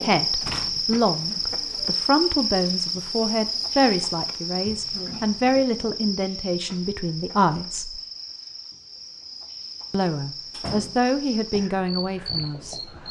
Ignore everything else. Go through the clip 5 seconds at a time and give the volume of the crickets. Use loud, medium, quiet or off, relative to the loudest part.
loud, medium, medium.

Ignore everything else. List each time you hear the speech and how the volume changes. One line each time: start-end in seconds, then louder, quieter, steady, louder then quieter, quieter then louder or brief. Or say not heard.
0.0-8.0 steady
9.9-12.8 brief.